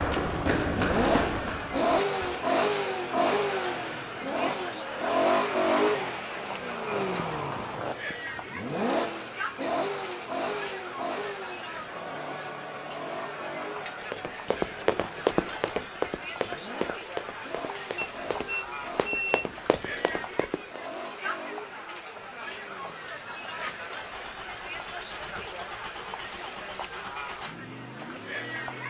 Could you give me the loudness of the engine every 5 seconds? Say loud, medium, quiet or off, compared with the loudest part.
loud, loud, medium, quiet, quiet, quiet.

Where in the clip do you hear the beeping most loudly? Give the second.
19 s.